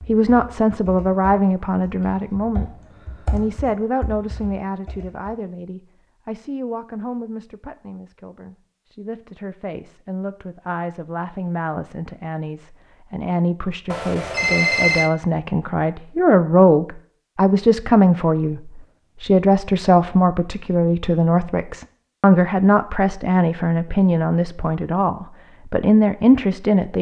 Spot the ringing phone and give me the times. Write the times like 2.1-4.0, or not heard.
13.9-15.1.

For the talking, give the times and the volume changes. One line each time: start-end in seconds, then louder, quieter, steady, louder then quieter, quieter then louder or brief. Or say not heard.
0.1-2.7 brief
3.3-26.9 louder.